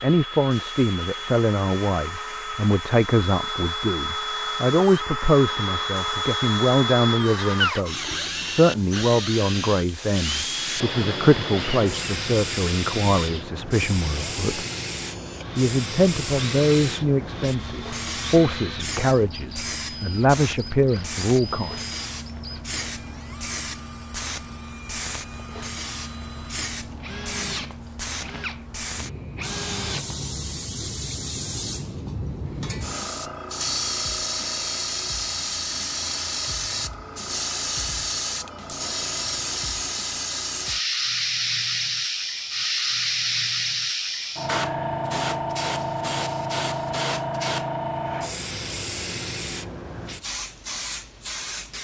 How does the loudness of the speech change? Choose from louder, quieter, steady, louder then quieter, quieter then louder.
steady.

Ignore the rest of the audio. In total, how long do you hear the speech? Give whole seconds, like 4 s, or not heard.
21 s.